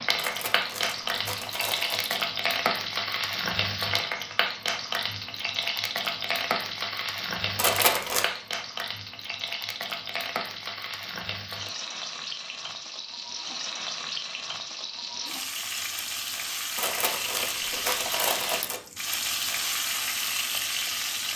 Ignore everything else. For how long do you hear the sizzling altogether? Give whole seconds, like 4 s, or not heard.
21 s.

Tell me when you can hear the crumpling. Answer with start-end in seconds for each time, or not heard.
0.1-2.2, 7.5-8.3, 16.8-18.8.